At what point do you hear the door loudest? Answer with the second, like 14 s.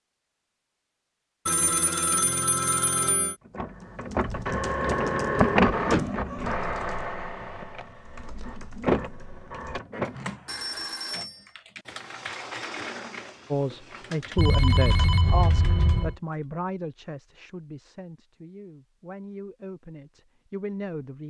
6 s.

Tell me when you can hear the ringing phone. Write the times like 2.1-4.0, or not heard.
1.4-3.4, 10.1-11.4, 14.3-16.1.